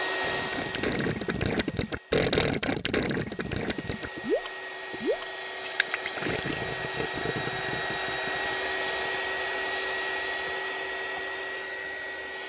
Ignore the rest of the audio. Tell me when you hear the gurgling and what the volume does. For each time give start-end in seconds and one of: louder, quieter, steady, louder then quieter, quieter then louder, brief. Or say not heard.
0.2-9.1 quieter.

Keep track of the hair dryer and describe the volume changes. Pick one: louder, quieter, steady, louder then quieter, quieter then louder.
louder.